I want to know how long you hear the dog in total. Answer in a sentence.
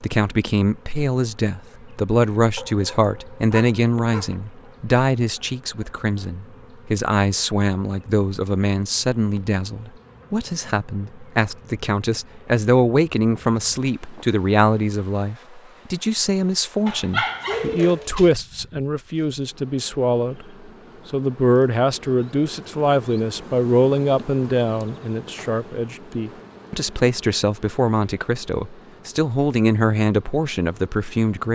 The dog can be heard for 3 seconds in total.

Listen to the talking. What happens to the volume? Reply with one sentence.
The loudness of the talking stays about the same.